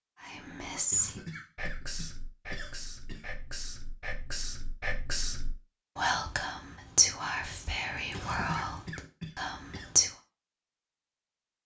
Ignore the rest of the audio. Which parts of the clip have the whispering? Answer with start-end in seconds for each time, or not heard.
0.2-10.1.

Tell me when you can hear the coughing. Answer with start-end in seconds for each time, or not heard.
0.9-3.4, 8.1-9.9.